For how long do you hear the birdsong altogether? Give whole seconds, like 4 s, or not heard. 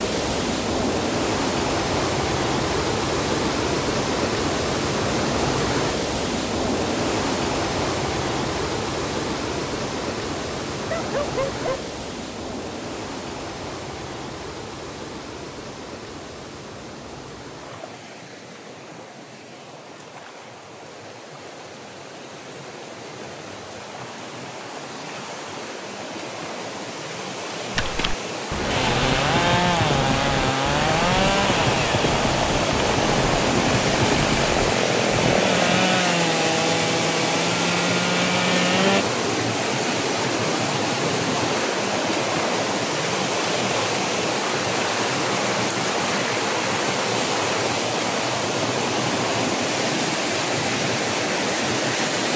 not heard.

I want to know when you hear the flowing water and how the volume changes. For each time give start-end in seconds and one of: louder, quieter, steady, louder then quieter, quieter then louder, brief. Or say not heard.
0.0-52.3 quieter then louder.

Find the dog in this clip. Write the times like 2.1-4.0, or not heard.
10.9-11.8.